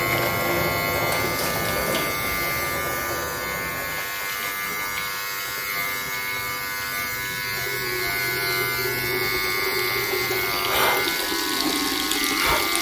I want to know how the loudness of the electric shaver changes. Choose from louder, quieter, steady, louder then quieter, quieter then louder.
steady.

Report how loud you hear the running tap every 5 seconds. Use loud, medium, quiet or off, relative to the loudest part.
loud, medium, loud.